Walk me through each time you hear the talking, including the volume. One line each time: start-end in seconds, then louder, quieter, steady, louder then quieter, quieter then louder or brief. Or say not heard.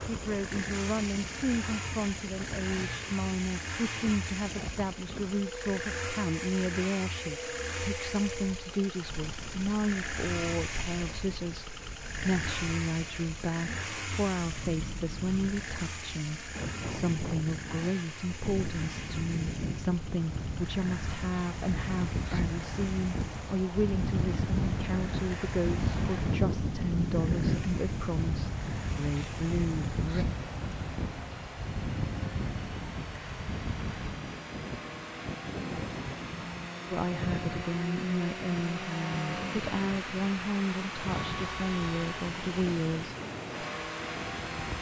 0.1-30.2 steady
36.9-43.1 steady.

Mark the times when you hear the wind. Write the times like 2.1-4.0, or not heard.
0.0-44.7.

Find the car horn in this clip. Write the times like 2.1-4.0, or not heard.
41.1-42.3.